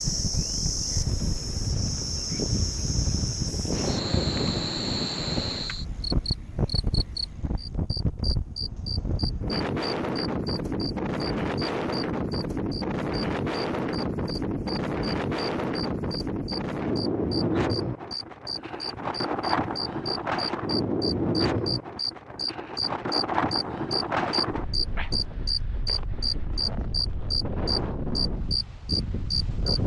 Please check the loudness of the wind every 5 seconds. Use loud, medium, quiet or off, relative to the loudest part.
loud, loud, loud, loud, loud, medium.